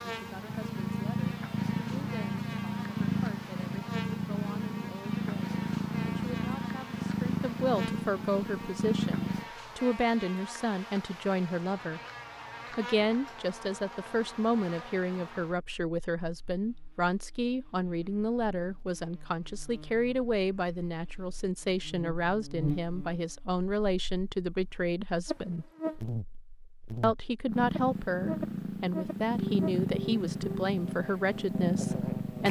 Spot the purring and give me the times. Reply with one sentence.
You can hear the purring from 0.0 to 9.5 s and from 27.4 to 32.4 s.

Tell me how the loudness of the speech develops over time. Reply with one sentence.
The volume of the speech goes up.